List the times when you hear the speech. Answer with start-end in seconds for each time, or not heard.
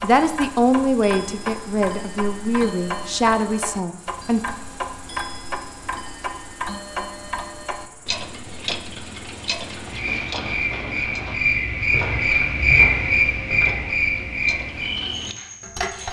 0.0-4.4.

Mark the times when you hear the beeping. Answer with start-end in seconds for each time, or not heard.
not heard.